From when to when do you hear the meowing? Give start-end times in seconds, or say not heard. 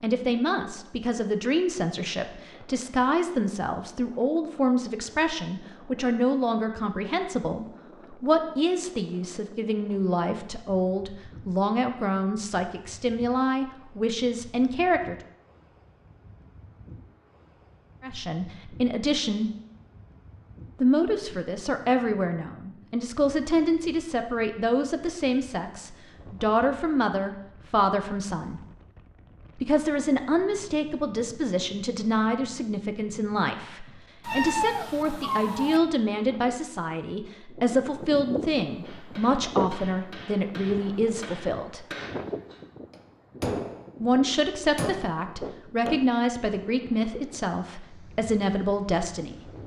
34.2-35.8.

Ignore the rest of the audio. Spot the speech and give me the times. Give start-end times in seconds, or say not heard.
0.0-15.2, 18.0-19.5, 20.8-28.6, 29.6-41.9, 44.0-49.4.